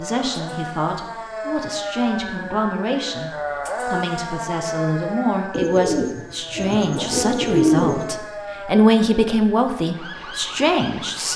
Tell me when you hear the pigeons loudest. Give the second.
8 s.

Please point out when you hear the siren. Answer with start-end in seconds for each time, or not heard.
0.0-11.3.